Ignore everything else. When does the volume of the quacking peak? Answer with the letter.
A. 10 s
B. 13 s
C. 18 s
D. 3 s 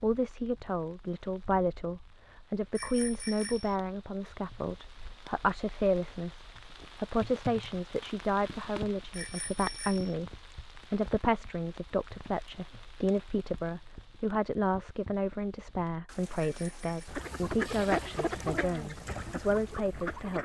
C.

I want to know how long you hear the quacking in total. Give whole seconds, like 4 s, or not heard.
3 s.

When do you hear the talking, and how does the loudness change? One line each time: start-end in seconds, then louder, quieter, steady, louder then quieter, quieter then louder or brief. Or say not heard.
0.0-20.3 steady.